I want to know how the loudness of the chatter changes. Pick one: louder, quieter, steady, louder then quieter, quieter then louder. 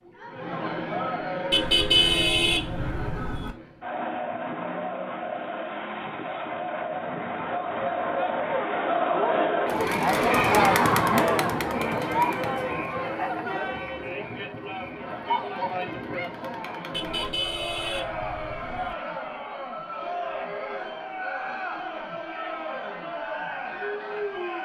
louder then quieter.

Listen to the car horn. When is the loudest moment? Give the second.
2 s.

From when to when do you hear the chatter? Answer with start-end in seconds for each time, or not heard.
0.0-24.6.